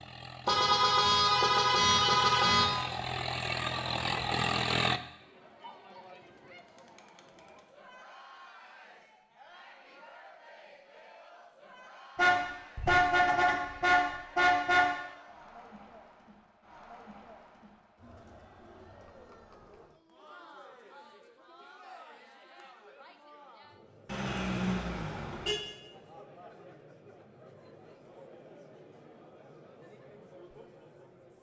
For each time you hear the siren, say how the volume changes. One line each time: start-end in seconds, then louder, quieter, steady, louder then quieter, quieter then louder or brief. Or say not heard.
not heard.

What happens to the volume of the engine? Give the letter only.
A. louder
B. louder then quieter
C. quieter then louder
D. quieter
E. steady
A.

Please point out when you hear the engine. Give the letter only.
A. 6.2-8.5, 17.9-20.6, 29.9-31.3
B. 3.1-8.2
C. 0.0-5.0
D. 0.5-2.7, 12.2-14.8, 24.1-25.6
C.